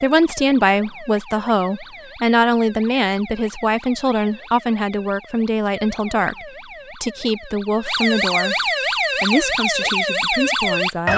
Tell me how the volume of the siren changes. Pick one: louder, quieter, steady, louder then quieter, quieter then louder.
louder.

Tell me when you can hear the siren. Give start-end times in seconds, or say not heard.
0.0-11.1.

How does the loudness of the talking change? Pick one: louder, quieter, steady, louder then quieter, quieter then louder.
quieter.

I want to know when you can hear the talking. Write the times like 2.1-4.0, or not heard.
0.0-11.1.